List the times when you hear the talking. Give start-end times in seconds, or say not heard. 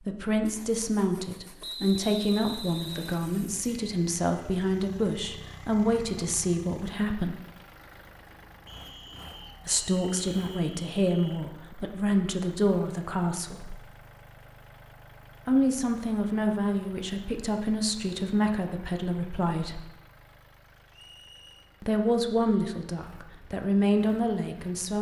0.1-7.3, 9.7-13.8, 15.4-19.8, 21.8-24.9.